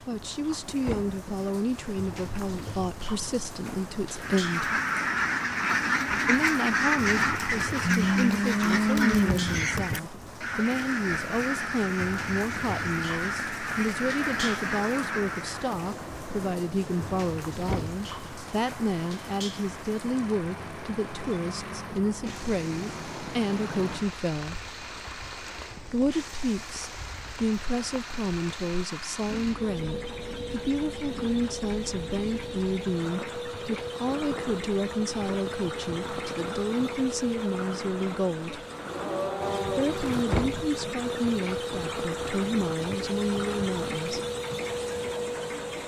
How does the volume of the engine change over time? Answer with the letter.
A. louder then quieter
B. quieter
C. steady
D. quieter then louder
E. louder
E.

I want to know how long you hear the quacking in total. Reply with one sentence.
The quacking can be heard for 12 seconds in total.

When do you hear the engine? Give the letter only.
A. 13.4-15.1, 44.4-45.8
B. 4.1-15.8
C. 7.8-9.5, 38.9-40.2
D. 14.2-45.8
D.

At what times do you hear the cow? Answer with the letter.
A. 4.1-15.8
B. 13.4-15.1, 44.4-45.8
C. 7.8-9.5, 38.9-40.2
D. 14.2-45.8
C.